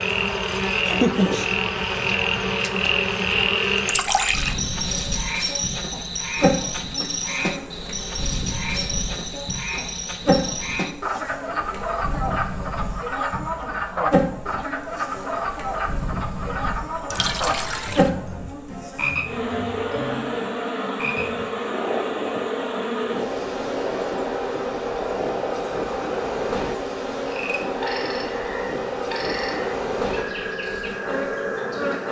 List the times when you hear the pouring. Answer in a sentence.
The pouring can be heard from 3.9 to 4.6 s and from 17.1 to 18.1 s.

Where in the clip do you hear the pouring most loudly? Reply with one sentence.
The volume of the pouring peaks at 4 seconds.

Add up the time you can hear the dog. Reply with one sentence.
You can't hear the dog here.